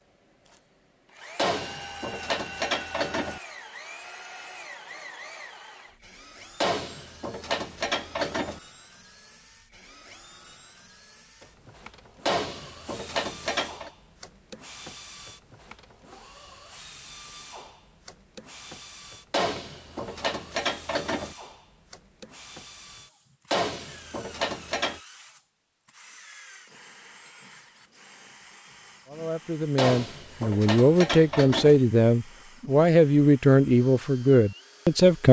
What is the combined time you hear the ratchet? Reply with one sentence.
The ratchet can be heard for 11 seconds in total.